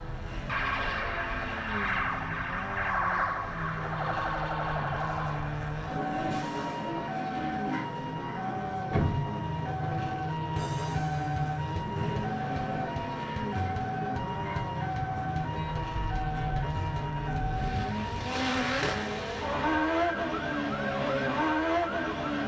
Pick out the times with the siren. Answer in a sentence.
The siren can be heard from 0.0 to 22.4 s.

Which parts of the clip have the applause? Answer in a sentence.
You can't hear the applause here.